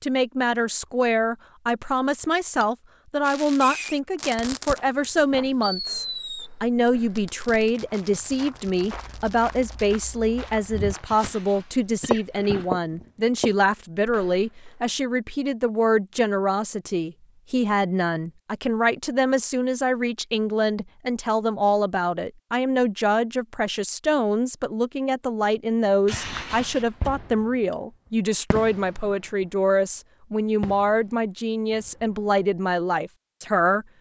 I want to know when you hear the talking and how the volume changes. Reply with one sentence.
The talking can be heard from 0.0 to 33.9 s, at a steady volume.